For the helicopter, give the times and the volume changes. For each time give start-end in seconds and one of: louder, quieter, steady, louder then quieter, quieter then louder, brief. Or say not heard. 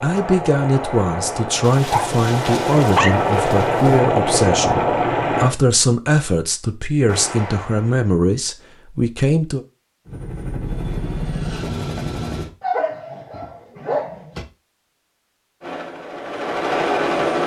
0.0-5.5 louder
10.1-12.5 brief
15.6-17.4 brief.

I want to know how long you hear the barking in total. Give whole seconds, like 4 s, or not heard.
4 s.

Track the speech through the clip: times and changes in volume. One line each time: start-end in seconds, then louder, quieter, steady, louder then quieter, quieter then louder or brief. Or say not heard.
0.0-9.6 steady.